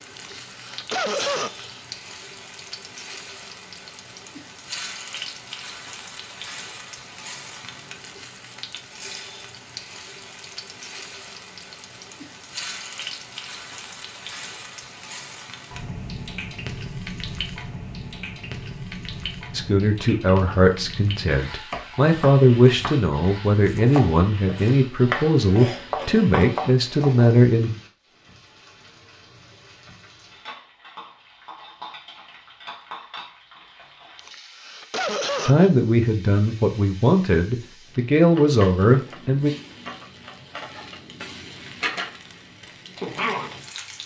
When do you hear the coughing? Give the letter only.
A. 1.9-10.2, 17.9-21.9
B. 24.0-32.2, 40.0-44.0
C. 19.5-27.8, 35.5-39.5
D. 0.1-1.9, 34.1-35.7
D.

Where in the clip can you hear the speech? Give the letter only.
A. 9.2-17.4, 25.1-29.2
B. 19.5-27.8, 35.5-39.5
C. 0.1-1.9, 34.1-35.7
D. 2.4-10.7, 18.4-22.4
B.